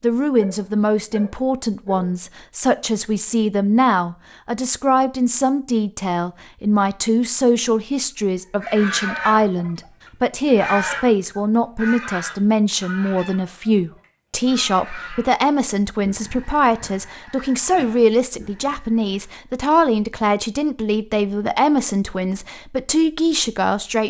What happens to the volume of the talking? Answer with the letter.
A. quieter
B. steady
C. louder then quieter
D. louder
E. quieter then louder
B.